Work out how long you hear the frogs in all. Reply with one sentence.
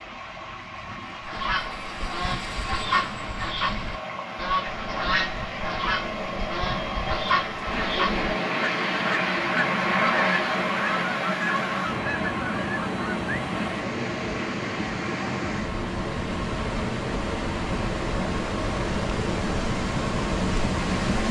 You can't hear the frogs here.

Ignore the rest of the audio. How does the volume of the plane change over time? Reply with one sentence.
The loudness of the plane goes up, then down.